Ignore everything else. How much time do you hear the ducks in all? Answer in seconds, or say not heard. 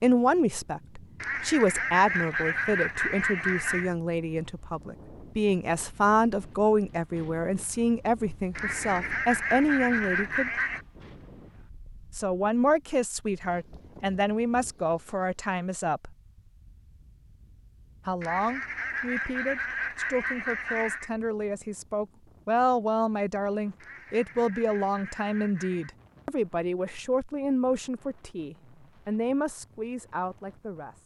10 s.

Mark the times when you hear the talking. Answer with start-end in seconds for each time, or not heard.
0.0-10.6, 12.1-16.1, 18.1-31.0.